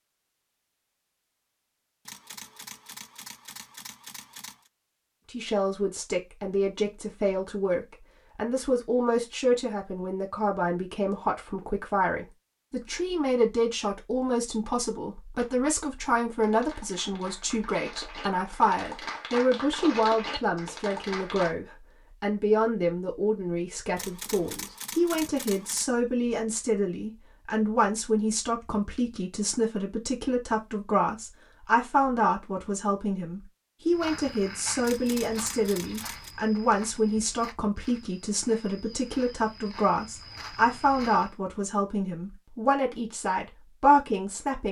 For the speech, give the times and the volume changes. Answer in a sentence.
The speech can be heard from 5.3 to 44.6 s, at a steady volume.